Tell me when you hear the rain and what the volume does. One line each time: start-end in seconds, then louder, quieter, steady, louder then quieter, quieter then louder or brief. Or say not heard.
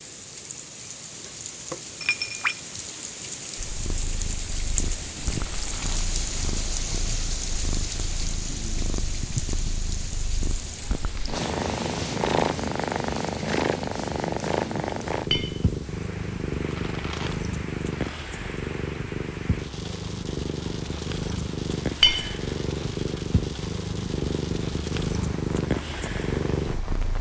0.0-27.1 quieter.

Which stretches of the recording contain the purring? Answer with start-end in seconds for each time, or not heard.
3.5-27.1.